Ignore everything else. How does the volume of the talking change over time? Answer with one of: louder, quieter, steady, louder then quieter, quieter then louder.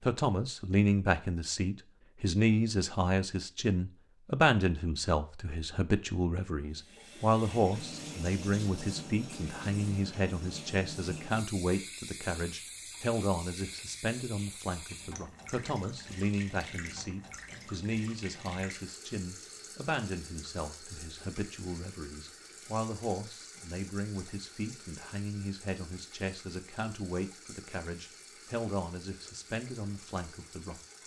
quieter.